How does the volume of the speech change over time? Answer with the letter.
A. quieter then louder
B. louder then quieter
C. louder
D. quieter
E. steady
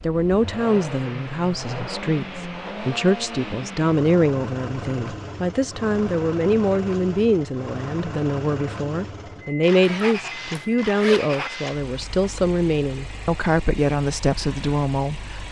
E.